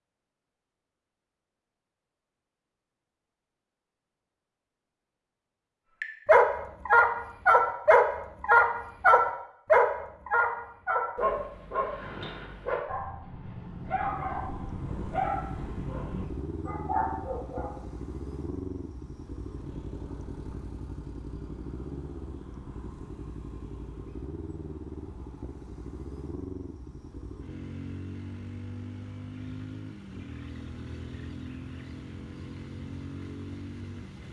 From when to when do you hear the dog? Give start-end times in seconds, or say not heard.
6.0-17.7.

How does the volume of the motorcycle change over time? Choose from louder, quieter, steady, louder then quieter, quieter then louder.
steady.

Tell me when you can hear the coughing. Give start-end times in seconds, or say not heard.
not heard.